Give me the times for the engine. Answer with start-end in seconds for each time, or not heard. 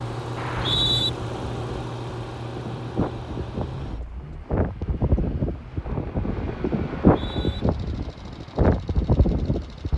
0.0-9.9.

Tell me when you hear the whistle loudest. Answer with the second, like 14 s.
1 s.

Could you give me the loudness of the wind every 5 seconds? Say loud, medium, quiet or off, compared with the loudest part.
medium, loud.